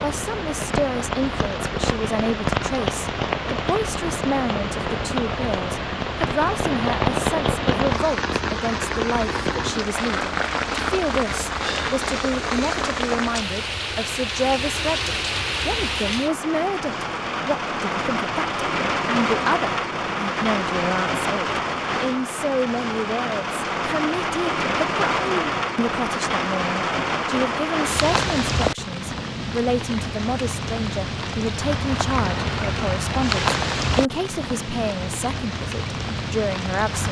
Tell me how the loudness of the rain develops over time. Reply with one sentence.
The loudness of the rain stays about the same.